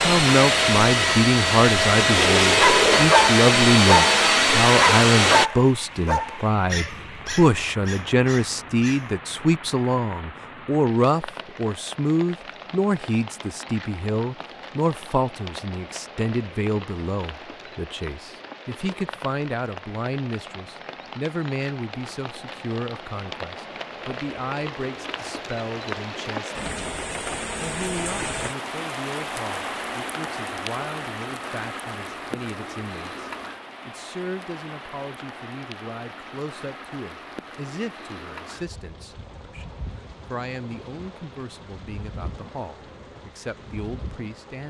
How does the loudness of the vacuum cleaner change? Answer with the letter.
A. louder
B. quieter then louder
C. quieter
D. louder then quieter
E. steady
E.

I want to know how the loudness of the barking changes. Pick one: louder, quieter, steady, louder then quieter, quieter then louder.
quieter.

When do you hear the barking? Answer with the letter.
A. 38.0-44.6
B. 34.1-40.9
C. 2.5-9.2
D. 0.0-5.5
C.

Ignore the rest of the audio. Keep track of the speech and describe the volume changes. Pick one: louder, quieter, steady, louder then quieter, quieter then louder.
quieter.